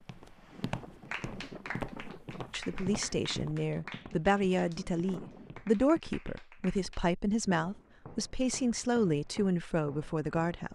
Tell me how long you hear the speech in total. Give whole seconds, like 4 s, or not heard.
8 s.